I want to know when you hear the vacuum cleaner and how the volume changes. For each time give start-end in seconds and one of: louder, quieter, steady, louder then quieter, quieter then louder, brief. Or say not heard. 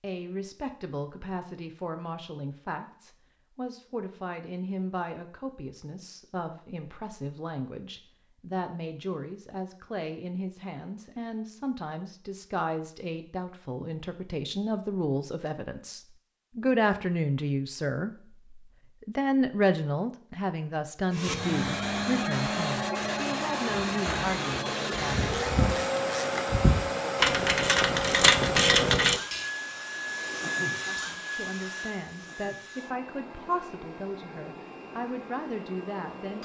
21.1-36.4 quieter.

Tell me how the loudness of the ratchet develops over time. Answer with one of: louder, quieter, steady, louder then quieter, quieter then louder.
louder.